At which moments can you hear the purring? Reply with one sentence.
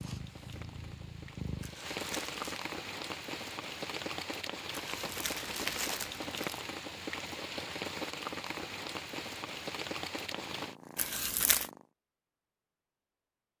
The purring can be heard from 0.0 to 1.8 s and from 10.2 to 11.9 s.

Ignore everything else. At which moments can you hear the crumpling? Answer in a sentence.
You can hear the crumpling from 1.6 to 2.6 s, from 4.7 to 6.7 s and from 10.9 to 11.7 s.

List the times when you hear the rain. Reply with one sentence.
You can hear the rain from 0.0 to 10.8 s.